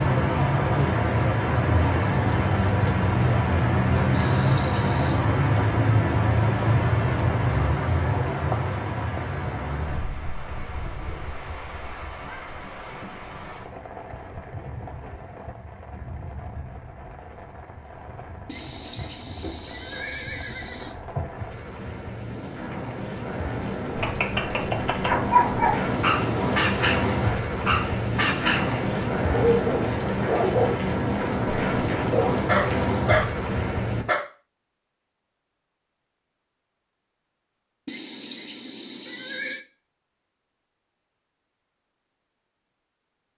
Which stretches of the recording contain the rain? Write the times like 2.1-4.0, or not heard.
0.0-34.0.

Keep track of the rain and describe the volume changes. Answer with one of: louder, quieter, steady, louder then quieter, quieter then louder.
quieter then louder.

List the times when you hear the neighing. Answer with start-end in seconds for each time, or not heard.
4.1-5.2, 18.4-20.9, 37.9-39.6.